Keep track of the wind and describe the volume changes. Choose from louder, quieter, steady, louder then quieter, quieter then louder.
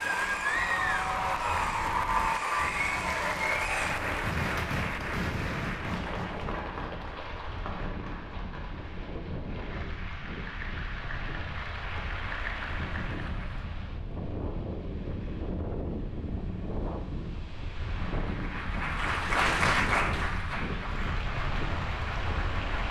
louder.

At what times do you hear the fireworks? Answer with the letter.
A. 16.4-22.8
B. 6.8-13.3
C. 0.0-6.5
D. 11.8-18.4
C.